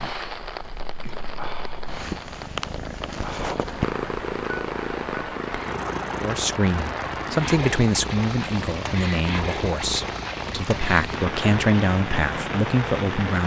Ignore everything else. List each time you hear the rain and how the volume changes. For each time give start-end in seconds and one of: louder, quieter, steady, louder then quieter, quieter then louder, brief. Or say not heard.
0.0-13.4 louder.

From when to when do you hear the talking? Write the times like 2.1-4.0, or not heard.
6.2-13.4.